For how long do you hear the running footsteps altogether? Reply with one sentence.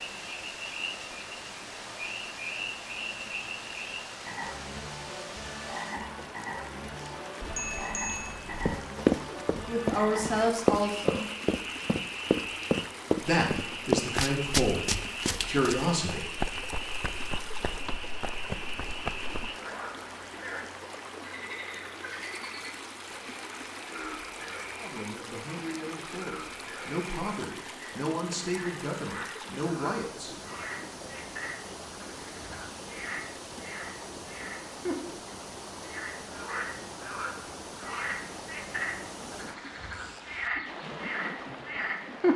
The running footsteps can be heard for 11 seconds in total.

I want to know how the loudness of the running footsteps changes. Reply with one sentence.
The loudness of the running footsteps goes down.